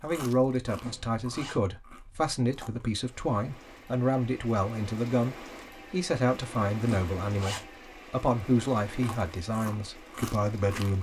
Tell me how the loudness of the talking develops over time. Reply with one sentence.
The volume of the talking stays about the same.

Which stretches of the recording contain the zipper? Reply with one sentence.
The zipper can be heard from 0.8 to 1.6 s and from 6.8 to 7.7 s.